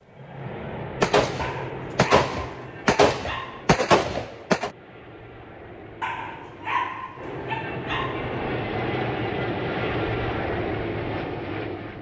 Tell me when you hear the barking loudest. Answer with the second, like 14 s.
7 s.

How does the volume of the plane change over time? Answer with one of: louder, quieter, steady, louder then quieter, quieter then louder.
quieter then louder.